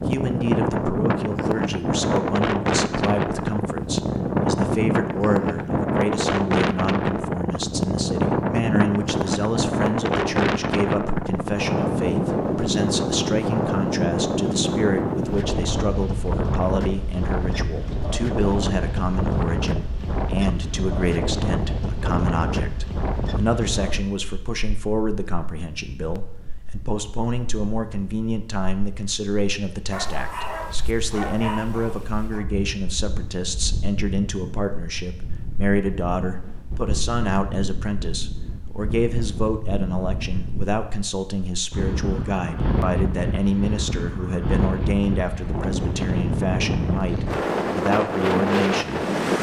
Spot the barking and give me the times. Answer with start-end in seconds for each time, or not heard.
29.9-32.5.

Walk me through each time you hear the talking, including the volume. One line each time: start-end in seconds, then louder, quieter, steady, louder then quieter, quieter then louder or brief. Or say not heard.
0.0-49.0 steady.